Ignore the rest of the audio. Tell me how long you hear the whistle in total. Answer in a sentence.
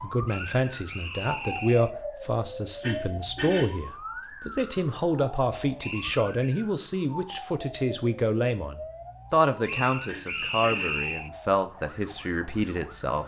You can hear the whistle for 4 seconds altogether.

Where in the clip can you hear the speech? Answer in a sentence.
The speech can be heard from 0.0 to 13.2 s.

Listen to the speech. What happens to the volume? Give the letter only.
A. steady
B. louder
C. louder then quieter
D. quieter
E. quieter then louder
A.